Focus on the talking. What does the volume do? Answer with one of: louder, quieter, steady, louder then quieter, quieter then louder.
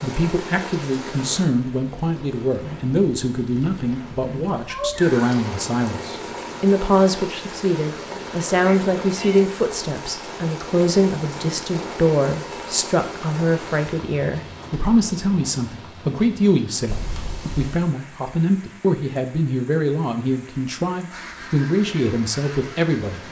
steady.